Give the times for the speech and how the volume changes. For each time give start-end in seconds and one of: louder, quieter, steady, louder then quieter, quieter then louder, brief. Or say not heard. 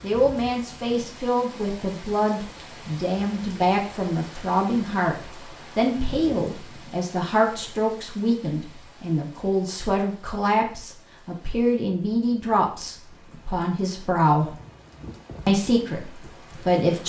0.0-14.6 steady
15.4-17.0 brief.